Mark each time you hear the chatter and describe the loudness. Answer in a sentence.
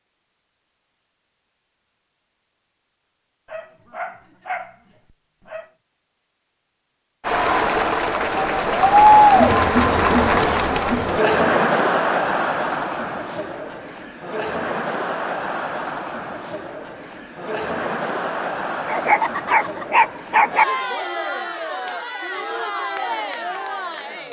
The chatter can be heard from 7.2 to 24.2 s, getting quieter.